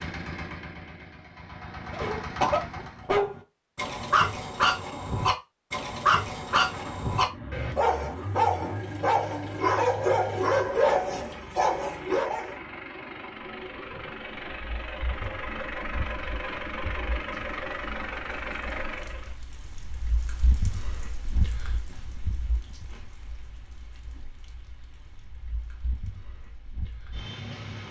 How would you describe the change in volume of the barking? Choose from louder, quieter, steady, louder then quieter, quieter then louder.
steady.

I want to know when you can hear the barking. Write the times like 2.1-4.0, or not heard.
1.9-12.6.